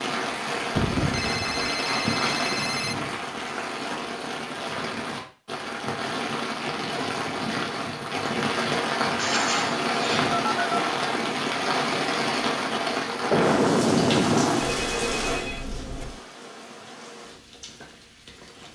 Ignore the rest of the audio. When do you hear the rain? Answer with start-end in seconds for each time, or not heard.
0.0-18.7.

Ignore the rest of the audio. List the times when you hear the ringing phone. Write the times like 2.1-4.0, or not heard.
1.1-3.0, 10.3-10.8, 14.6-16.2.